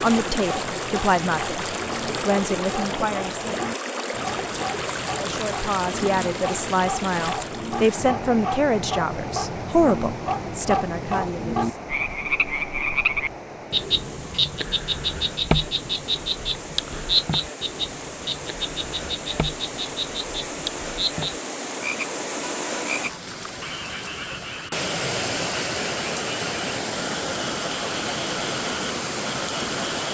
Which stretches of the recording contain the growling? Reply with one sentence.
You can't hear the growling here.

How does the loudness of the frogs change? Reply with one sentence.
The loudness of the frogs goes up, then down.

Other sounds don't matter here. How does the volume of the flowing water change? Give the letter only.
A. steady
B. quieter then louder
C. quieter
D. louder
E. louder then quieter
B.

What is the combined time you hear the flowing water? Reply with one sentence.
The flowing water can be heard for 30 seconds in total.